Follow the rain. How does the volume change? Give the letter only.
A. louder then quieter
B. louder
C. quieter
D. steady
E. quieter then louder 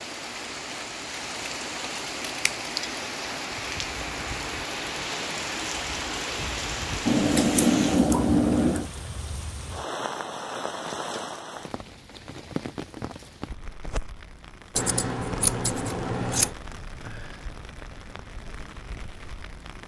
C.